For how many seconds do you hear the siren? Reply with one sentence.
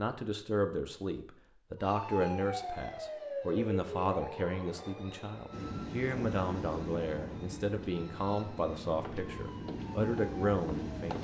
The siren can be heard for 9 seconds in total.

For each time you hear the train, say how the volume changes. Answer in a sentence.
The train can be heard from 5.5 to 11.1 s, getting quieter then louder.